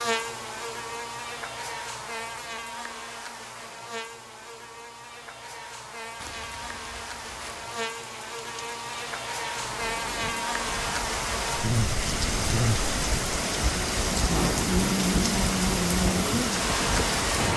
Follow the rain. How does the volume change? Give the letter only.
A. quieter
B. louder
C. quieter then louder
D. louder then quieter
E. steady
B.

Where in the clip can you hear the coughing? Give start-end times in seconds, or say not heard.
not heard.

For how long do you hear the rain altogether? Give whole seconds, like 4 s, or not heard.
11 s.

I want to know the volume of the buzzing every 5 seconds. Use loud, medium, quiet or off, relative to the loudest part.
medium, medium, loud, loud.